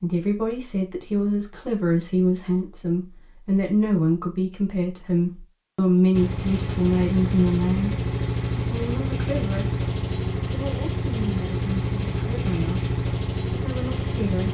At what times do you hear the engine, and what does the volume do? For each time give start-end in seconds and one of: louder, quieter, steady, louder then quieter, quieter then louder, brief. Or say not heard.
6.1-14.4 steady.